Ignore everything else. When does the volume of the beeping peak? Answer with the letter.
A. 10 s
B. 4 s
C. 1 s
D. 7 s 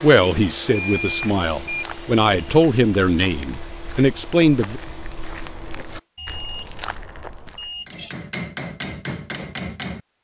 C.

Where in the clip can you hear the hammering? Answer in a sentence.
You can hear the hammering from 7.8 to 10.0 s.